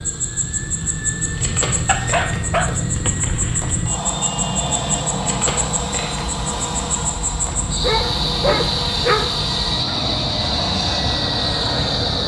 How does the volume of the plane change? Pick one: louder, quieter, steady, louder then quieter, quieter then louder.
steady.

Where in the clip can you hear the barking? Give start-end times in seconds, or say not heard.
1.9-3.9, 7.8-9.4.